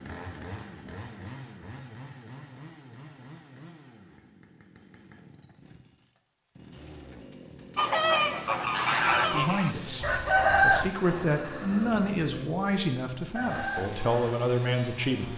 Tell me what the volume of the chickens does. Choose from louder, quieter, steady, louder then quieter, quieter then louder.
quieter then louder.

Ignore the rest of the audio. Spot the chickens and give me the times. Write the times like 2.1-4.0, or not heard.
7.8-14.3.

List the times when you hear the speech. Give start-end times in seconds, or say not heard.
9.3-15.3.